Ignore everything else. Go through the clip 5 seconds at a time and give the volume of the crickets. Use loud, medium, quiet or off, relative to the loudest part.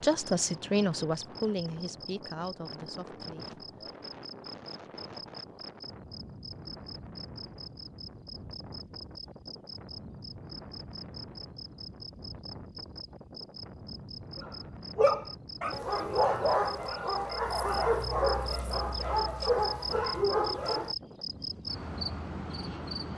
medium, medium, medium, loud, loud.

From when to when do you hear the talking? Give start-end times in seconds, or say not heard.
0.0-3.6.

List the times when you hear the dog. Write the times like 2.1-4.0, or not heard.
14.3-20.9.